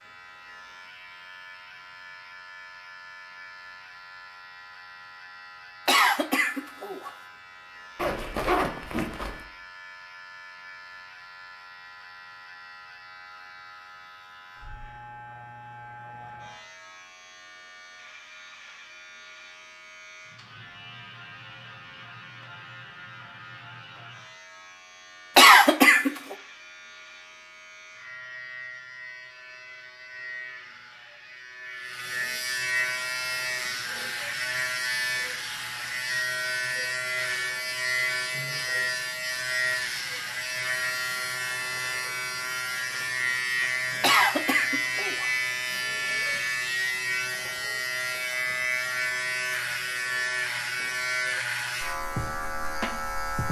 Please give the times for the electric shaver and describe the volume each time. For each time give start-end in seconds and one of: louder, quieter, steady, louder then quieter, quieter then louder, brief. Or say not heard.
0.0-53.4 louder.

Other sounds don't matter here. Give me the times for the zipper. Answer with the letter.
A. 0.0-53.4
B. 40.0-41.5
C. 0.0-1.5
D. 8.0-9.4
D.